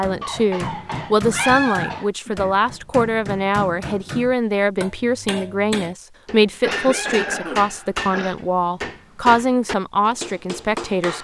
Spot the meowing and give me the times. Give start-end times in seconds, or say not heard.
1.3-2.5, 6.8-7.5.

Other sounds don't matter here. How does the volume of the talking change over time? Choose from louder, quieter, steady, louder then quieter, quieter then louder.
steady.